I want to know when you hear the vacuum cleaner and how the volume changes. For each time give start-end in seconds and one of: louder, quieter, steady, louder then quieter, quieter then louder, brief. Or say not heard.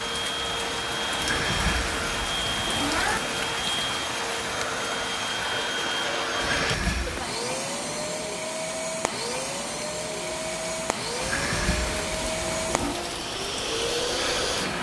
0.0-14.7 steady.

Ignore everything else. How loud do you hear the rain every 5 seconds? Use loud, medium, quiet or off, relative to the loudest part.
loud, medium, loud.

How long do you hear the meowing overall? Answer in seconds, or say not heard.
5 s.